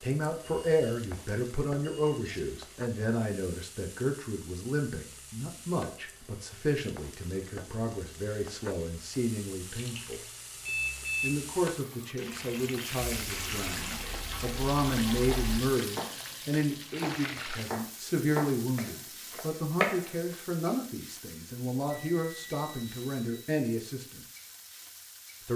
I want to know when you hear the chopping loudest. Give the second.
20 s.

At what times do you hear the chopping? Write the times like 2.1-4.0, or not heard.
15.2-16.1, 16.9-20.4.